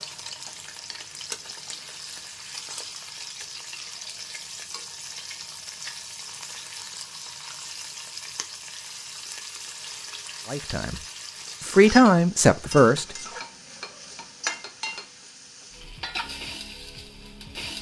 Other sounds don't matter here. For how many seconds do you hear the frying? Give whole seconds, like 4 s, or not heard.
18 s.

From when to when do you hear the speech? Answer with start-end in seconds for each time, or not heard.
10.5-11.0, 11.6-13.2.